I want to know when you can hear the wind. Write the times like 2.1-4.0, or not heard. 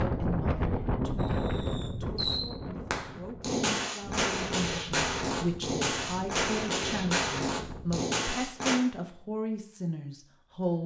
0.0-8.1.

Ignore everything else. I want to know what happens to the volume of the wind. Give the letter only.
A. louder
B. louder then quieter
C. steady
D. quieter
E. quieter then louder
D.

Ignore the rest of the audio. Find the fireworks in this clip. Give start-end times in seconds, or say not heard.
1.1-8.8.